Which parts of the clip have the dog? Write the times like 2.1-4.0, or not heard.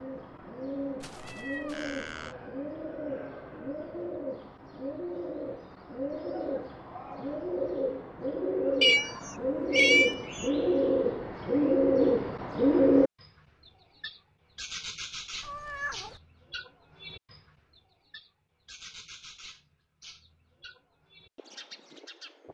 not heard.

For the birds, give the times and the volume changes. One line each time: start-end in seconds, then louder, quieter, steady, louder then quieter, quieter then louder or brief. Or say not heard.
0.0-22.4 louder then quieter.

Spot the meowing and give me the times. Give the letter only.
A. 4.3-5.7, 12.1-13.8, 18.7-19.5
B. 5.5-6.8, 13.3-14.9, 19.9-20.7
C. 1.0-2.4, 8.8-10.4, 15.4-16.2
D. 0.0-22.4
C.